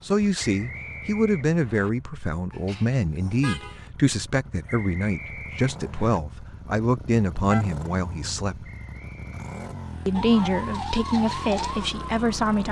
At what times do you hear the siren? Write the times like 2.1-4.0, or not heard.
10.1-12.6.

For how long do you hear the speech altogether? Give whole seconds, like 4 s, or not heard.
11 s.